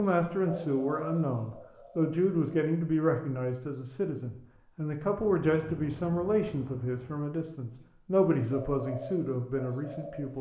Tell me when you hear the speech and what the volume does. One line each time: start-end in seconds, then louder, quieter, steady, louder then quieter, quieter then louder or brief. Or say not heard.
0.0-10.3 steady.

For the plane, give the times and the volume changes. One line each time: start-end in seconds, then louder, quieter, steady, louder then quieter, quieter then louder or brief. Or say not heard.
not heard.